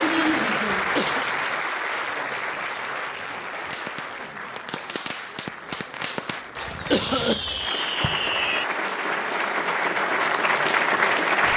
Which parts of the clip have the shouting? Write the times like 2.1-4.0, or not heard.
not heard.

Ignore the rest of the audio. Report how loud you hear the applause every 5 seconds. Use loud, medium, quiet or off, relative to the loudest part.
medium, medium, loud.